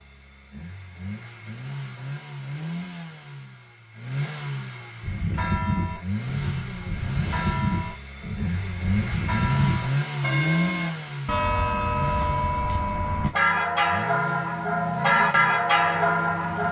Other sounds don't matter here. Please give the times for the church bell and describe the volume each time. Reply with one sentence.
You can hear the church bell from 5.0 to 16.6 s, getting louder.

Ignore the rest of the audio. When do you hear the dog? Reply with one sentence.
You can't hear the dog here.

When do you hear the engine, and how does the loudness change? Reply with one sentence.
You can hear the engine from 0.0 to 16.6 s, getting louder then quieter.